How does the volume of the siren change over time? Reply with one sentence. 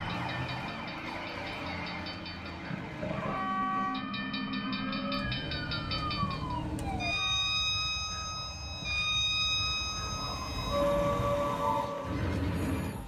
The volume of the siren goes up.